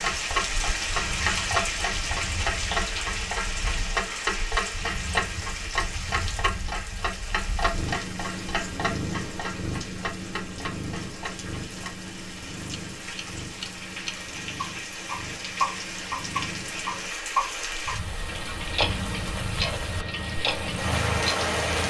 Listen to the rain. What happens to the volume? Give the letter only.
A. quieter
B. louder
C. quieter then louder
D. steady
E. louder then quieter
C.